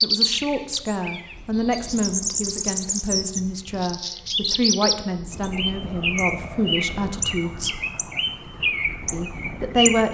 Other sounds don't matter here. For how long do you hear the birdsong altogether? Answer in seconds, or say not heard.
10 s.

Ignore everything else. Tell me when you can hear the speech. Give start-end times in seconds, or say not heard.
0.0-7.8, 9.1-10.0.